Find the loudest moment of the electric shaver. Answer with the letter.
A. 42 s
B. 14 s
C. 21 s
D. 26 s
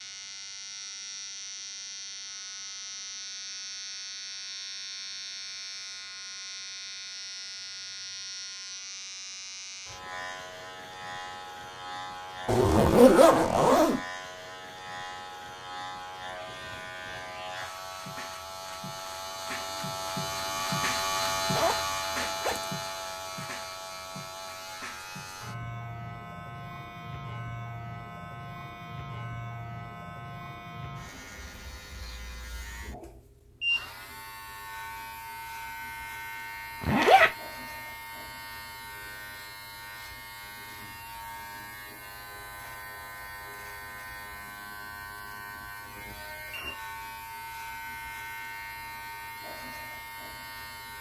C.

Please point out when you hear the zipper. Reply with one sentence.
The zipper can be heard from 12.4 to 14.0 s, from 21.6 to 22.7 s and from 36.8 to 37.3 s.